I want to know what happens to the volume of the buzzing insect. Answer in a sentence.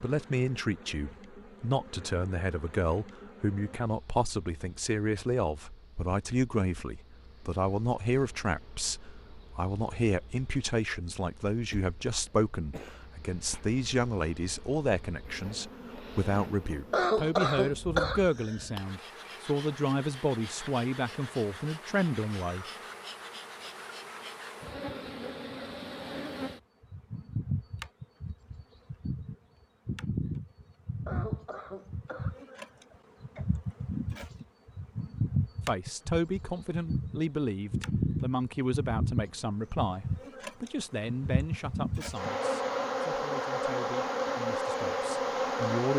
The loudness of the buzzing insect goes up.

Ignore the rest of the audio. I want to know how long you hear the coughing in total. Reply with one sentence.
You can hear the coughing for 6 seconds altogether.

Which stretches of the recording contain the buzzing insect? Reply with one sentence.
You can hear the buzzing insect from 0.0 to 45.9 s.